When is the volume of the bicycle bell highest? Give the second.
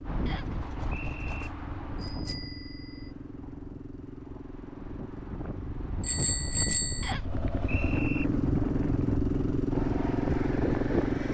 7 s.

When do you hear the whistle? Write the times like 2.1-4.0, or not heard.
0.2-1.5, 7.0-8.2.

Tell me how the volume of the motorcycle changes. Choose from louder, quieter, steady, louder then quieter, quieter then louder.
louder.